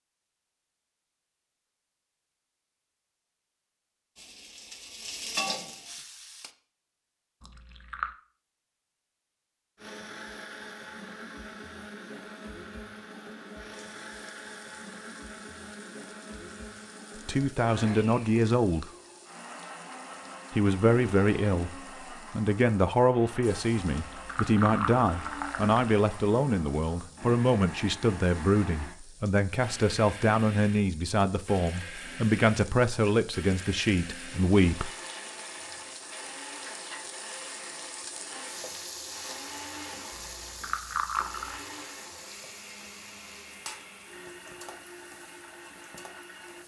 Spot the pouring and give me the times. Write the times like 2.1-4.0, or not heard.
7.4-8.2, 23.9-25.9, 40.1-41.6.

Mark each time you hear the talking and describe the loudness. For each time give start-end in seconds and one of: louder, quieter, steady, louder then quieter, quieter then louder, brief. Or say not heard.
17.2-18.9 brief
20.5-34.9 steady.